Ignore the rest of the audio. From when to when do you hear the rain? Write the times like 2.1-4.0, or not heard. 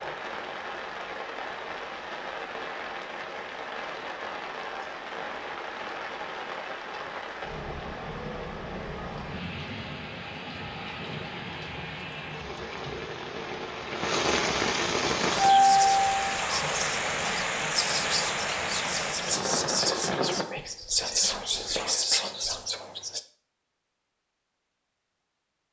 0.0-20.4.